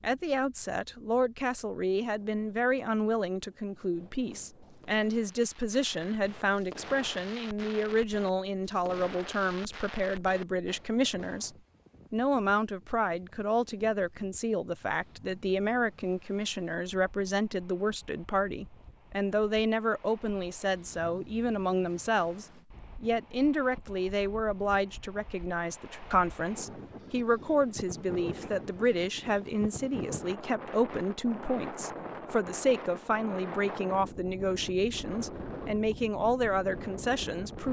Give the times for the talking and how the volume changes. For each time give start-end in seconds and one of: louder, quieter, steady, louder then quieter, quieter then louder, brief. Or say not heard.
0.0-11.5 steady
12.1-37.6 steady.